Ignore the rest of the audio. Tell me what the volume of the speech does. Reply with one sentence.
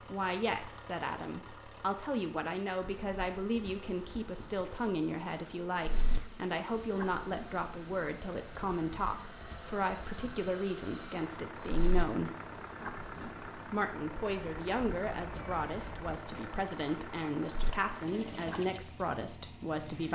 The volume of the speech stays about the same.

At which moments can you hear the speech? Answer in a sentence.
You can hear the speech from 0.1 to 12.3 s and from 13.7 to 20.1 s.